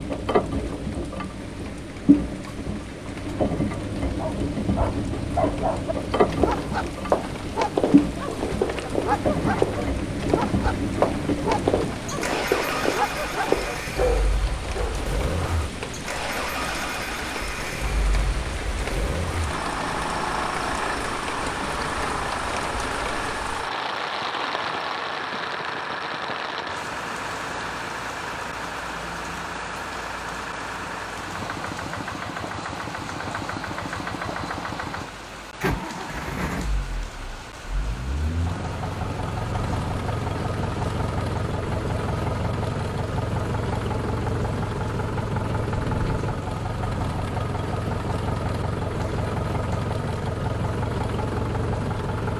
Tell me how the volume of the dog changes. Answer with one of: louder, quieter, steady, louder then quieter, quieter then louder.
steady.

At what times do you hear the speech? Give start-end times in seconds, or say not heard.
not heard.